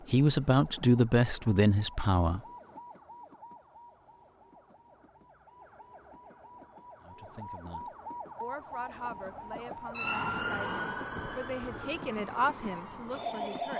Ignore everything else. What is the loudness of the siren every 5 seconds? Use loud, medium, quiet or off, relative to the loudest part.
quiet, medium, loud.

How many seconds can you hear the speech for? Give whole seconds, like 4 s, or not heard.
9 s.